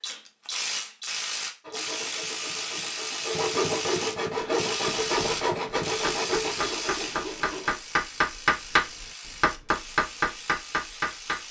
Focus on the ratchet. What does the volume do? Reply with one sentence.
The volume of the ratchet goes down.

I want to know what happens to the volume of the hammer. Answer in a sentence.
The loudness of the hammer goes up.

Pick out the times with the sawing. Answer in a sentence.
You can hear the sawing from 1.6 to 7.8 s.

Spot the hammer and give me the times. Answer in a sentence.
You can hear the hammer from 4.3 to 11.4 s.